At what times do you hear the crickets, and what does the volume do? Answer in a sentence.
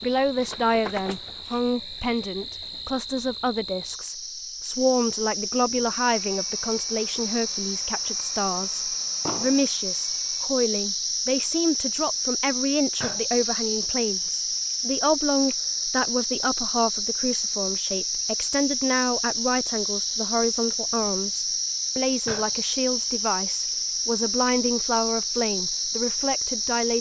The crickets can be heard from 0.0 to 26.9 s, getting louder.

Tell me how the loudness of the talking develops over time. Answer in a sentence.
The volume of the talking stays about the same.